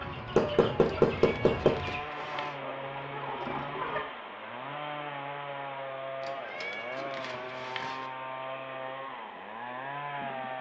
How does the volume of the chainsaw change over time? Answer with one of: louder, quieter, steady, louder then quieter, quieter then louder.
steady.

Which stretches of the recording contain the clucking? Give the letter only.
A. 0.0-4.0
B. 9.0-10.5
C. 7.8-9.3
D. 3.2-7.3
A.